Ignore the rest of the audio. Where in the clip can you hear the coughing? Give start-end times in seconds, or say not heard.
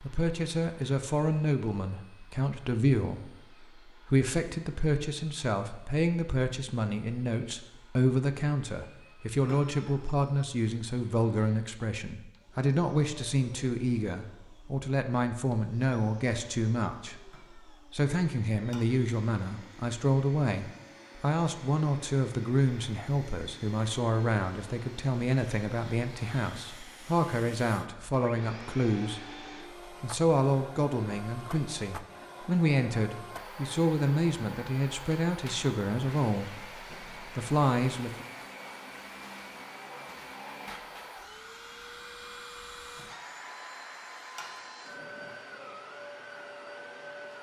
not heard.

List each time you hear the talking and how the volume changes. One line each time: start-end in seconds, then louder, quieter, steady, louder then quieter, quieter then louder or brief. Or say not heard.
0.0-38.2 steady.